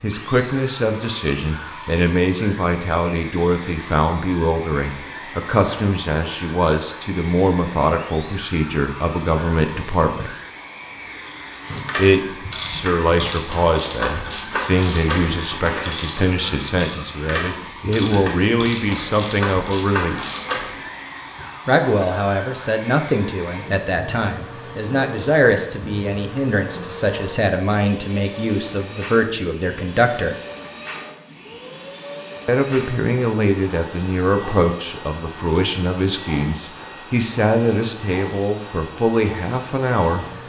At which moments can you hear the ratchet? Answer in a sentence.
The ratchet can be heard from 11.7 to 20.8 s.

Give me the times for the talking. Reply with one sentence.
You can hear the talking from 0.0 to 10.3 s, from 11.9 to 20.2 s, from 21.6 to 30.4 s and from 32.5 to 40.2 s.